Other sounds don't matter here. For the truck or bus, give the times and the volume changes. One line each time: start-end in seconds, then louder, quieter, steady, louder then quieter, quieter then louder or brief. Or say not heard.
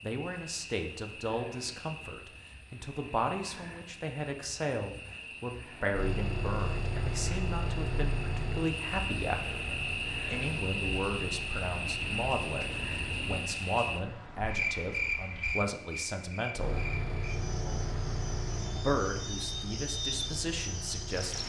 5.9-13.4 quieter
16.6-21.4 quieter.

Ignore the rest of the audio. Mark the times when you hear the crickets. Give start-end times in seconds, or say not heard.
0.0-21.4.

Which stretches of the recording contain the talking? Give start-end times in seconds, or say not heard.
0.0-9.6, 10.3-16.8, 18.8-21.4.